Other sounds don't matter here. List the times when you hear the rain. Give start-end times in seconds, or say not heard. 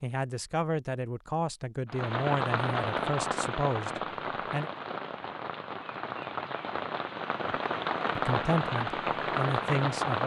1.9-10.2.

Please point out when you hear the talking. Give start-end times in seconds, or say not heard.
0.0-4.7, 8.2-10.2.